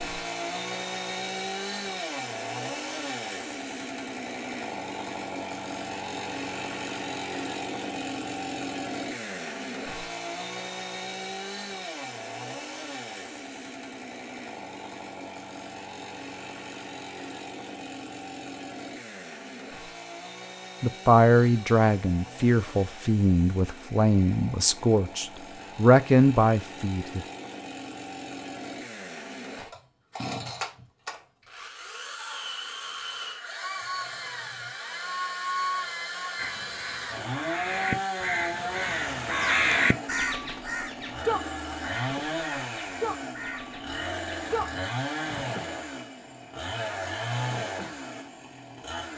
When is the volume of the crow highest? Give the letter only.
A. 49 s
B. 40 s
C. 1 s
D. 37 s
B.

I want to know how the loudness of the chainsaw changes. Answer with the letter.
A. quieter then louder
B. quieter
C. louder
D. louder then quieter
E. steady
A.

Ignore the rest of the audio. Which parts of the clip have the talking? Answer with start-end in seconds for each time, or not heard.
20.8-27.2.